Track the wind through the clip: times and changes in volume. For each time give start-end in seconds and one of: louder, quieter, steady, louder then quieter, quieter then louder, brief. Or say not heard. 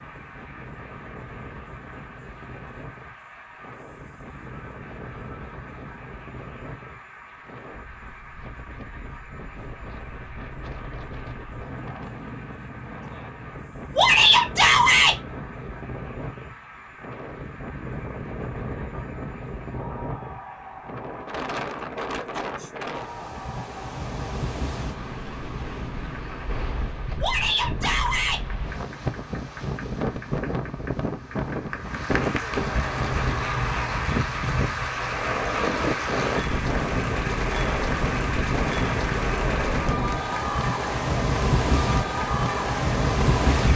0.0-43.6 louder.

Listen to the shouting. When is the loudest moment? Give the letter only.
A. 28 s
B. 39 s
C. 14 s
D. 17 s
C.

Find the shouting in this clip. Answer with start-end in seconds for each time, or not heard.
13.9-15.2, 27.2-28.4.